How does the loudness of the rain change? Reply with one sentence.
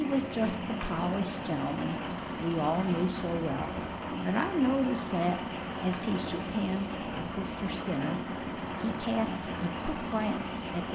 The loudness of the rain stays about the same.